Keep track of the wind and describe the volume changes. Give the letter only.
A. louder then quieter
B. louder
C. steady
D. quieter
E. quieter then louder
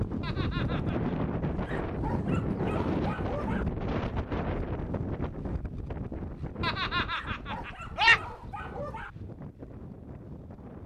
D.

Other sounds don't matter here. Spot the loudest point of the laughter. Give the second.
8 s.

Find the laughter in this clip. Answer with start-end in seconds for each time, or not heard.
0.2-1.1, 6.6-8.2.